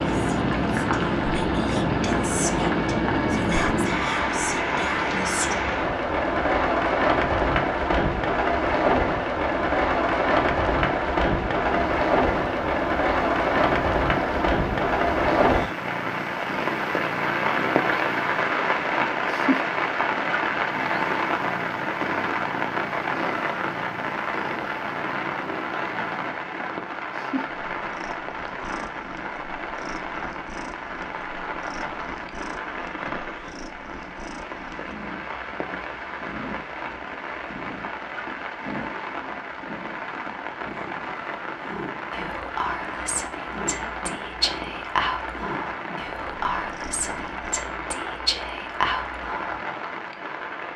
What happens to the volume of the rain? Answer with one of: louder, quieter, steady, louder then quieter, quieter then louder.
quieter.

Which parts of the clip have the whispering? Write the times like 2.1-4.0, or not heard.
0.0-5.6, 41.7-49.6.